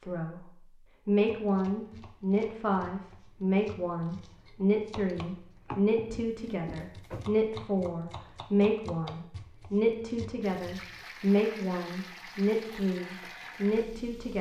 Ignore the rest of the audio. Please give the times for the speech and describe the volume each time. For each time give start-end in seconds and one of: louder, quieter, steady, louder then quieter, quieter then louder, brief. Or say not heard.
0.0-14.3 steady.